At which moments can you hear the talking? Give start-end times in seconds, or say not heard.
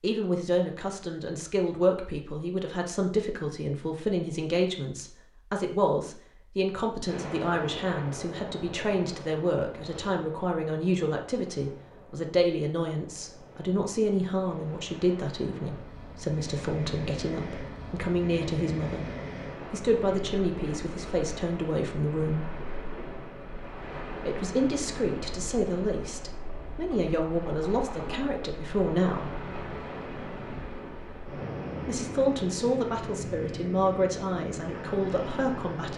0.0-19.1, 19.7-22.5, 24.2-29.4, 31.8-35.9.